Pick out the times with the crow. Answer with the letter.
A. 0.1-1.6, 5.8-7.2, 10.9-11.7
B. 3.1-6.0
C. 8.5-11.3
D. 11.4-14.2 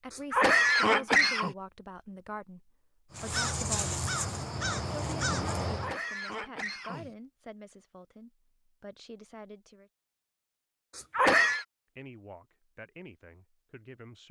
B.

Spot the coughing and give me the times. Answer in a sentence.
The coughing can be heard from 0.1 to 1.6 s, from 5.8 to 7.2 s and from 10.9 to 11.7 s.